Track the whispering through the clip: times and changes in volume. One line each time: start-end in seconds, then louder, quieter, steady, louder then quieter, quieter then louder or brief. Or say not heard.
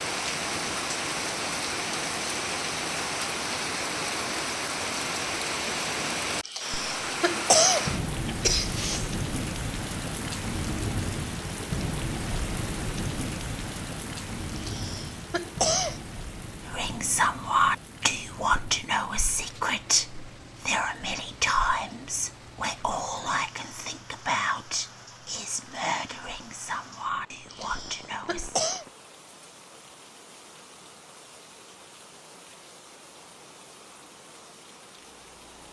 16.6-28.6 quieter.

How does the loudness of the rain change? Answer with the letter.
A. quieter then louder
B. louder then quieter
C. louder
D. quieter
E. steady
D.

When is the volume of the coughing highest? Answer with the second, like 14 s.
8 s.